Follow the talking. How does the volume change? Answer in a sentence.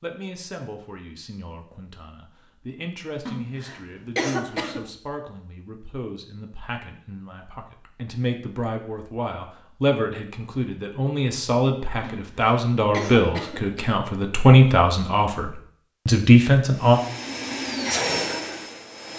The volume of the talking goes up.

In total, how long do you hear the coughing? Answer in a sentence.
The coughing can be heard for 4 seconds in total.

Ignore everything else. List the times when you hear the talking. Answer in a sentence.
The talking can be heard from 0.0 to 17.0 s.